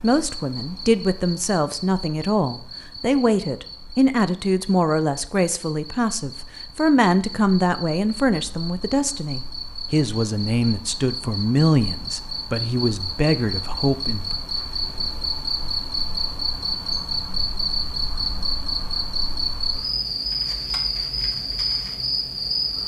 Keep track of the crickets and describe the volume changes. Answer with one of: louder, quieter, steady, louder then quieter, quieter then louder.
louder.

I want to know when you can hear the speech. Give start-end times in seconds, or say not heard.
0.0-14.4.